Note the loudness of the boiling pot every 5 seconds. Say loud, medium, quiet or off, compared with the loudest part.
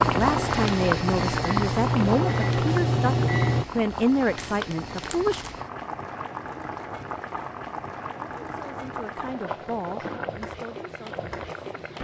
loud, medium, medium.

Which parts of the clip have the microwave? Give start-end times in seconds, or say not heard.
0.0-3.6.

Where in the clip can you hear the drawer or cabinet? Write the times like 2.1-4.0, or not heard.
not heard.